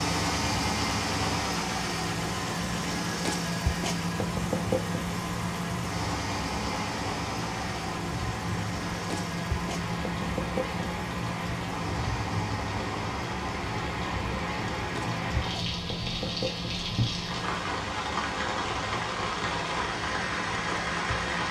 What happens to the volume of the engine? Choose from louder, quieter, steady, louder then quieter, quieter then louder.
quieter.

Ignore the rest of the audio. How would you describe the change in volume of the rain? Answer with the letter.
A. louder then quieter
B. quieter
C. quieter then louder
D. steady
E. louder
E.